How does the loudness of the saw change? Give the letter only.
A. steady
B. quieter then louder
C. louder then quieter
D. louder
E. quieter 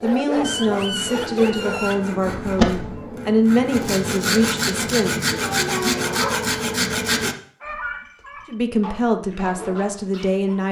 D.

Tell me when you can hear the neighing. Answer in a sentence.
You can hear the neighing from 2.2 to 3.0 s.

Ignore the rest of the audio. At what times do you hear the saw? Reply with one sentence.
The saw can be heard from 0.3 to 7.3 s.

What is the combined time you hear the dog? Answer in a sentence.
You can hear the dog for 5 seconds altogether.